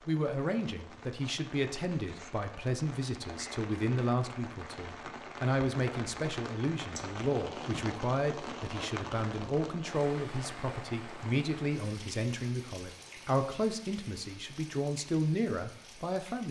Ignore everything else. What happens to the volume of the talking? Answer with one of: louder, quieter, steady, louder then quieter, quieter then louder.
steady.